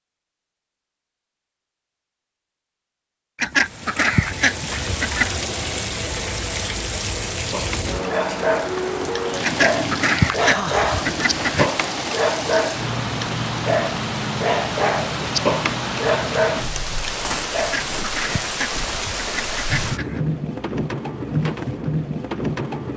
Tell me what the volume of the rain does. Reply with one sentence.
The volume of the rain stays about the same.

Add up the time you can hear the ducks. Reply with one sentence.
The ducks can be heard for 7 seconds in total.